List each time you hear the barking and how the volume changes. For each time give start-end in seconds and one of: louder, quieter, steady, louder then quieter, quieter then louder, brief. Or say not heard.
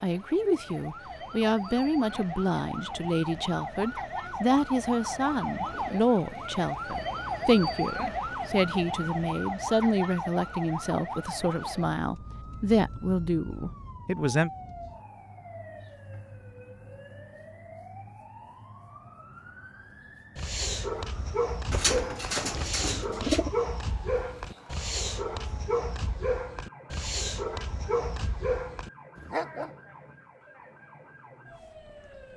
20.4-29.7 steady.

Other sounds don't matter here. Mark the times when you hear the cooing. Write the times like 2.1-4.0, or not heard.
21.7-23.5.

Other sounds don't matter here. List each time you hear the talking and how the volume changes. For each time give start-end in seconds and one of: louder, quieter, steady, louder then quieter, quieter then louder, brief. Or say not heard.
0.0-14.5 steady.